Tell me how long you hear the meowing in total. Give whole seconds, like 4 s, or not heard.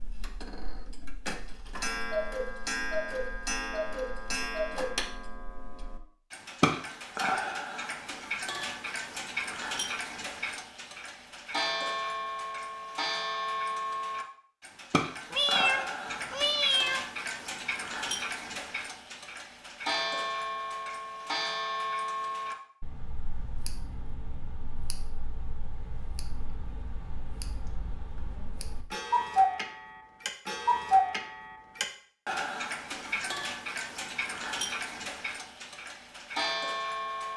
2 s.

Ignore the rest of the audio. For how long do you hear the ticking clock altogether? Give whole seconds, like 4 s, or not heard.
37 s.